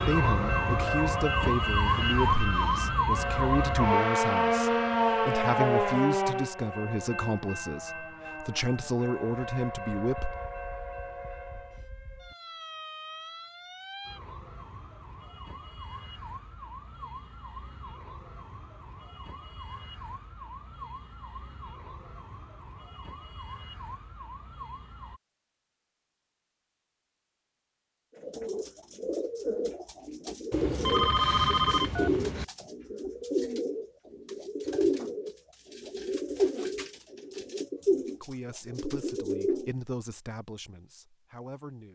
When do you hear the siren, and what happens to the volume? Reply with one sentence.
The siren can be heard from 0.0 to 25.2 s, getting quieter.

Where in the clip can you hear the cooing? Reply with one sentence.
You can hear the cooing from 28.1 to 39.7 s.